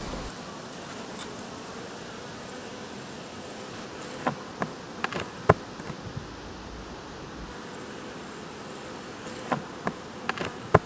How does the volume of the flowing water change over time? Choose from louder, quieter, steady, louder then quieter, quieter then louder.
steady.